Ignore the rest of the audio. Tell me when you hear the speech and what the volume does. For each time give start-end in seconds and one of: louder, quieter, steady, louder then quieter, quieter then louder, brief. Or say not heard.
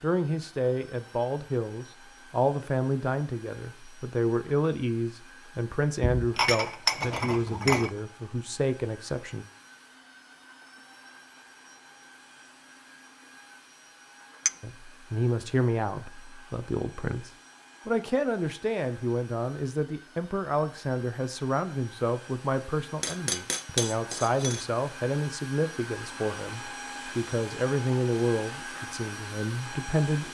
0.0-9.4 steady
14.6-30.2 steady.